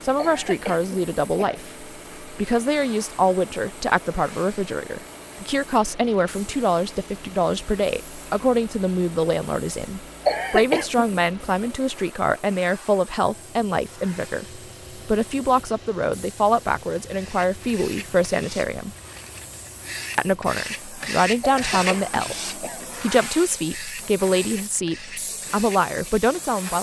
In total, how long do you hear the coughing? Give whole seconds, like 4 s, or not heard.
4 s.